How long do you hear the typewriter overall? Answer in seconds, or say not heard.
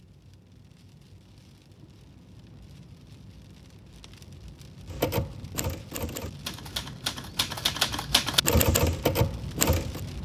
5 s.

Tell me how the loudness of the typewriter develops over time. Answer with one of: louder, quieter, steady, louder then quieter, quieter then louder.
louder.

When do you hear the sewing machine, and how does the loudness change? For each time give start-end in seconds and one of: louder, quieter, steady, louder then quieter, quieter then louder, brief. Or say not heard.
not heard.